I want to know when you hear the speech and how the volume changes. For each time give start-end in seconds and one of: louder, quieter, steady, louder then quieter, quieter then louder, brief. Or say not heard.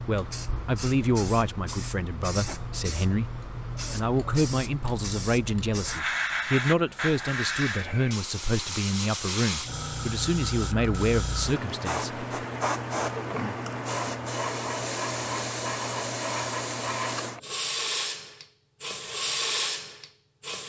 0.0-12.2 steady.